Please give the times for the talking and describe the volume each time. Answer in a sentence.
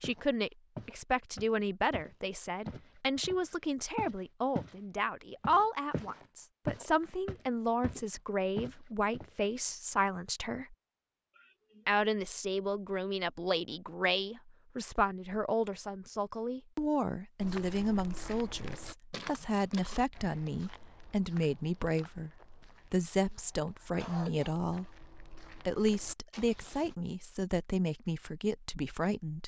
You can hear the talking from 0.0 to 10.8 s, at a steady volume; and from 11.8 to 29.4 s, at a steady volume.